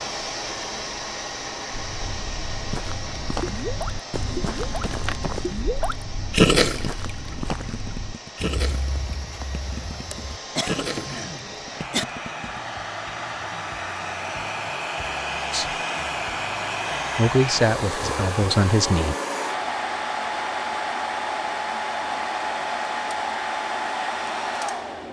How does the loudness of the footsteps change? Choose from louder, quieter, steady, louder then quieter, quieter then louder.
quieter.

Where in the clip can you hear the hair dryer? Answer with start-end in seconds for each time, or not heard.
0.0-25.0.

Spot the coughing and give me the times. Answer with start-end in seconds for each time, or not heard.
10.1-12.1.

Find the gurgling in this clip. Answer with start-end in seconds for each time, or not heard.
2.9-12.6.